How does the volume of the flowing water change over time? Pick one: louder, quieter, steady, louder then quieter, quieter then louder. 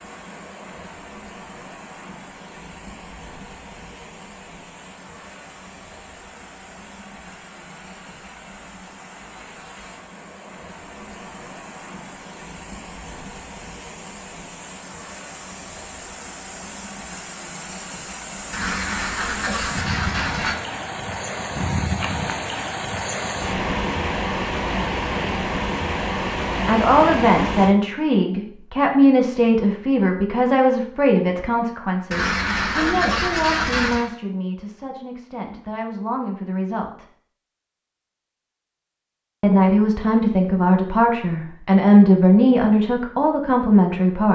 louder.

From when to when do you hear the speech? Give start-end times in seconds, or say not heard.
26.6-37.0, 39.4-44.3.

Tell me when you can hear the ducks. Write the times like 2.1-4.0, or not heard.
18.5-20.6, 32.1-34.1.